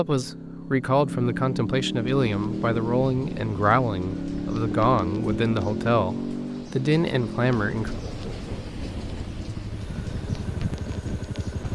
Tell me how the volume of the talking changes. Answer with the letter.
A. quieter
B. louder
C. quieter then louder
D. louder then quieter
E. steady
E.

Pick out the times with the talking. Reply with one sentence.
The talking can be heard from 0.0 to 7.9 s.